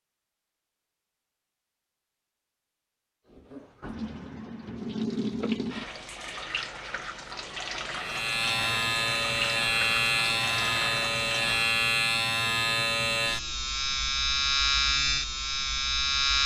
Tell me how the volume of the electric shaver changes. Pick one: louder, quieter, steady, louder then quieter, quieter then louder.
steady.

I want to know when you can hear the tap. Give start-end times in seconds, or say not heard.
3.3-11.8.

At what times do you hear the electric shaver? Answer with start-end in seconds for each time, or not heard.
8.0-16.4.